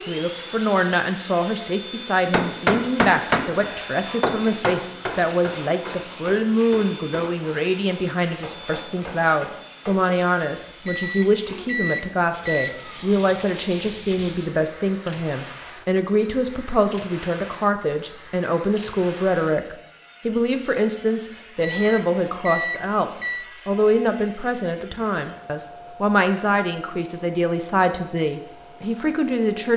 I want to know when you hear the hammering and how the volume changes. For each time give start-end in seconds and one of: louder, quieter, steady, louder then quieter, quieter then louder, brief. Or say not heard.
2.3-10.1 quieter.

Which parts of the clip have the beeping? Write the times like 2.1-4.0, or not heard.
10.8-12.8, 21.6-23.4.